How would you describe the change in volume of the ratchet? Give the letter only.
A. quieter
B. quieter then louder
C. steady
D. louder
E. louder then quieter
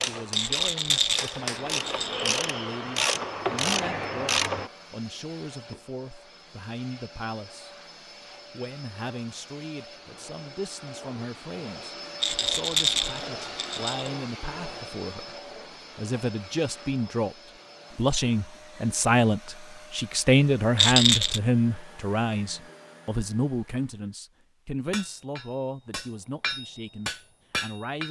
D.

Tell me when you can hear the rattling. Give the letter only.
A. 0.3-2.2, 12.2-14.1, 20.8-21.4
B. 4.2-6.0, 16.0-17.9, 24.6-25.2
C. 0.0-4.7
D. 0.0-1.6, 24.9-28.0
A.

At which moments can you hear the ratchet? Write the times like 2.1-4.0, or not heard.
0.0-4.7.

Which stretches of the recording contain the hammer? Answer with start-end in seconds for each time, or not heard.
0.0-1.6, 24.9-28.0.